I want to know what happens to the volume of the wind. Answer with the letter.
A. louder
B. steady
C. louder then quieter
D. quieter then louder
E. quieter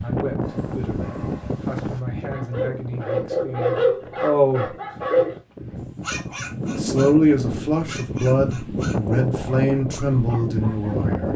D.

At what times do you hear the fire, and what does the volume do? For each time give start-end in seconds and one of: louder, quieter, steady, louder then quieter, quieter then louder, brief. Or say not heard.
not heard.